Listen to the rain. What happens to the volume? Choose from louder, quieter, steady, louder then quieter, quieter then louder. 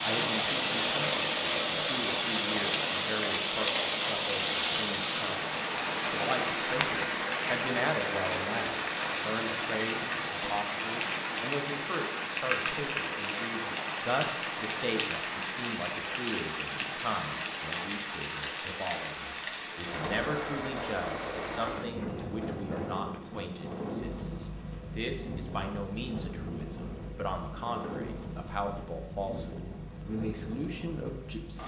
quieter.